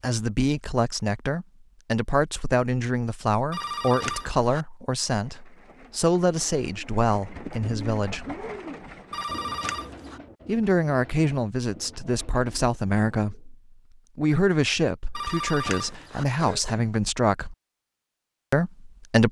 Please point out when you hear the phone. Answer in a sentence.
The phone can be heard from 3.5 to 4.7 s, from 9.1 to 10.2 s and from 15.1 to 16.2 s.